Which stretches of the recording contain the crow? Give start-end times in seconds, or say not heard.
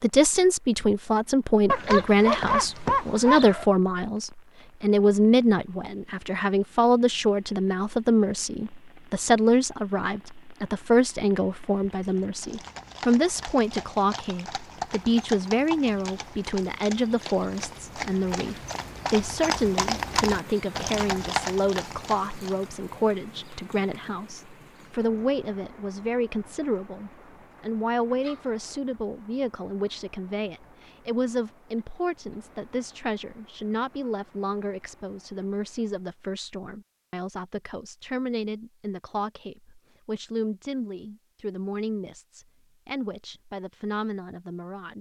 not heard.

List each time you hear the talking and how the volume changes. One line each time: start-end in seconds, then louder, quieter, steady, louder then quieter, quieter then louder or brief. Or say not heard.
0.0-44.9 quieter.